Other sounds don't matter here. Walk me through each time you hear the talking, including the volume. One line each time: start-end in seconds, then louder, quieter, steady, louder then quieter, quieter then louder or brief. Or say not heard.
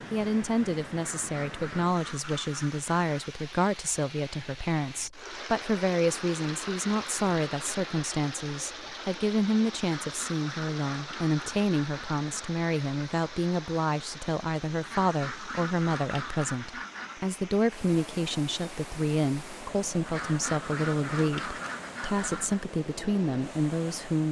0.1-24.2 steady.